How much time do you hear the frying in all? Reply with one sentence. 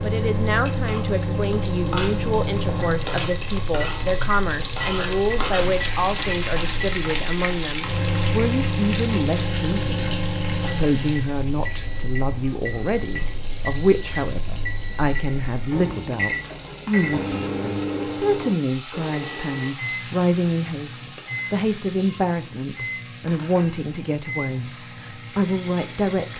The frying can be heard for 26 seconds in total.